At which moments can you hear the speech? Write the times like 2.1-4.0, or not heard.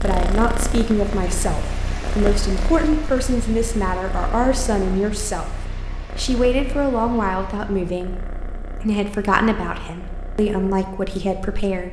0.0-5.5, 6.2-11.8.